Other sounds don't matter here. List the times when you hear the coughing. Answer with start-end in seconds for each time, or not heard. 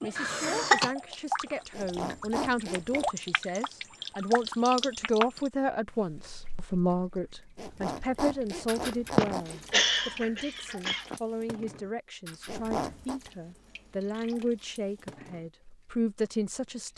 0.1-0.9, 9.2-11.2.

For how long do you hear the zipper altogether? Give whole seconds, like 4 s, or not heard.
4 s.